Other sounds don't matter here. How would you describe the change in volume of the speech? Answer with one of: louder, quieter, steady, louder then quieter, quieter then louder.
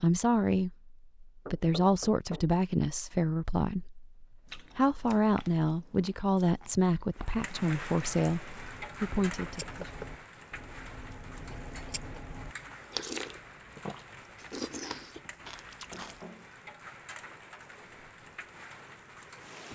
steady.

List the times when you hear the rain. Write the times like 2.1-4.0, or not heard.
7.2-19.7.